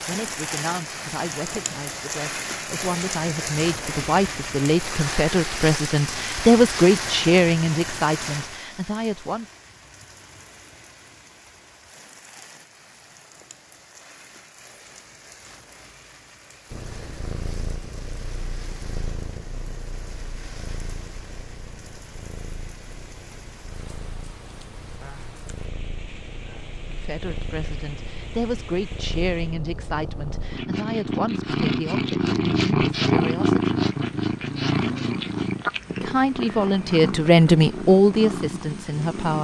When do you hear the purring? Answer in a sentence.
You can hear the purring from 16.7 to 39.4 s.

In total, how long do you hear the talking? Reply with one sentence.
You can hear the talking for 20 seconds altogether.